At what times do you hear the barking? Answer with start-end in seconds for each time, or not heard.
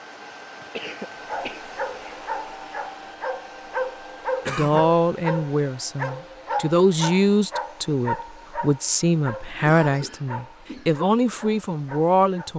1.2-12.5.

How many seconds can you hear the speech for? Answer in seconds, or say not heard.
8 s.